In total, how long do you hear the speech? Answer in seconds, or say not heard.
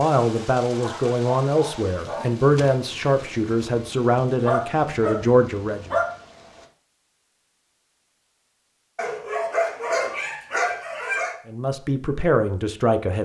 8 s.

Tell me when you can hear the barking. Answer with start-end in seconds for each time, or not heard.
0.8-2.4, 4.4-6.0, 8.9-11.3.